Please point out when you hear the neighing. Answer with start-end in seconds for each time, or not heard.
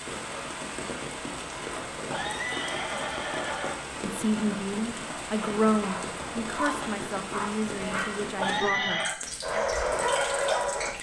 2.1-3.8, 8.3-9.2.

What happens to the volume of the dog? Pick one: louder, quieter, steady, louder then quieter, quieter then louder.
louder.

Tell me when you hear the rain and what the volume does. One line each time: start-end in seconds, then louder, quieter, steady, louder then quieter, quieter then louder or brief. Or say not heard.
0.0-10.9 steady.